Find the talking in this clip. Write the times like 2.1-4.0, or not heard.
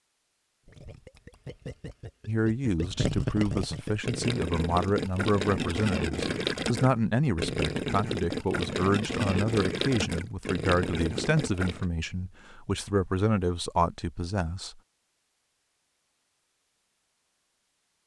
2.2-14.8.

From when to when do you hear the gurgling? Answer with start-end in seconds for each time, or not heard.
0.7-11.8.